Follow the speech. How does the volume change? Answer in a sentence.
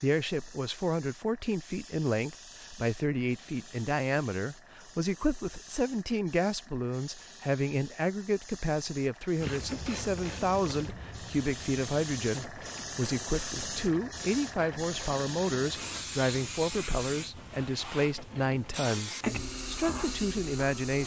The loudness of the speech stays about the same.